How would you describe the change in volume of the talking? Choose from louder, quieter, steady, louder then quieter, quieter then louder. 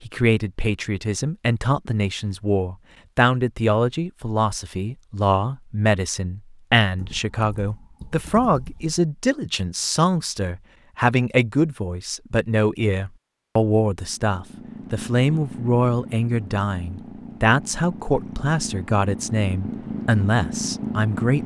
steady.